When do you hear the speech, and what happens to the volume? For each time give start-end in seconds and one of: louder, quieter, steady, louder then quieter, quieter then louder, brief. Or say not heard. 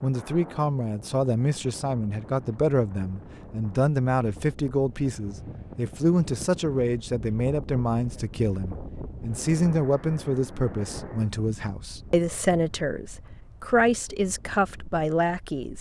0.0-15.7 steady.